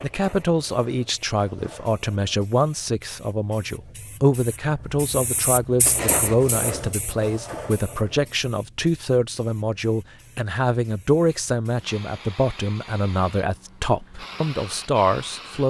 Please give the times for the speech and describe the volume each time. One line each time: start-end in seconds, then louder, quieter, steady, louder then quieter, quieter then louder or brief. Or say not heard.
0.0-15.6 steady.